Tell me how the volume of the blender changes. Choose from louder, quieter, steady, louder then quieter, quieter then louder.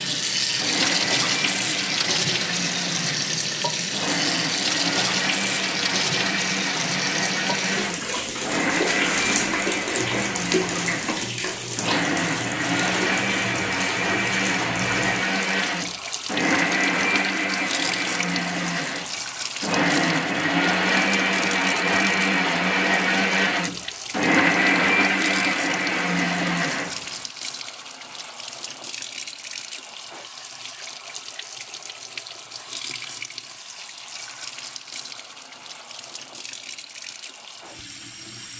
louder.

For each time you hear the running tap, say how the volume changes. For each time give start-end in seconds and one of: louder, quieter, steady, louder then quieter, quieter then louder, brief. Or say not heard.
0.0-38.5 quieter.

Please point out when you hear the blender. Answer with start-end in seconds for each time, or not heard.
0.0-27.1.